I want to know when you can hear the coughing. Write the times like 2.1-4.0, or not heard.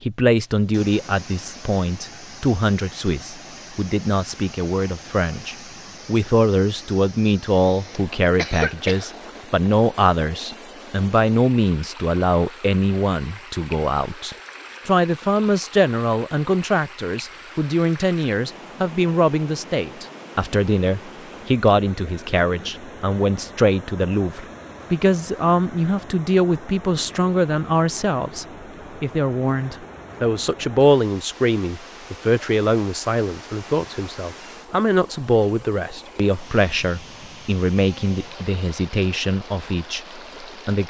7.4-9.1.